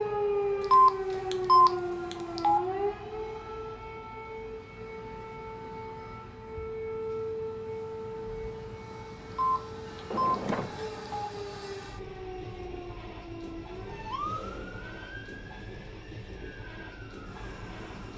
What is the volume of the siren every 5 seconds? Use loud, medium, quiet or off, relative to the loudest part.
loud, medium, medium, quiet.